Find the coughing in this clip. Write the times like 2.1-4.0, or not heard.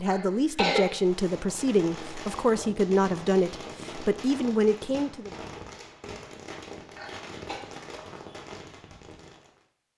0.1-0.9, 7.0-7.6.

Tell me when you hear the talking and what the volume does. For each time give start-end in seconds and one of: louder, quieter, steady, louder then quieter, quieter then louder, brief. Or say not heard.
0.0-5.3 steady.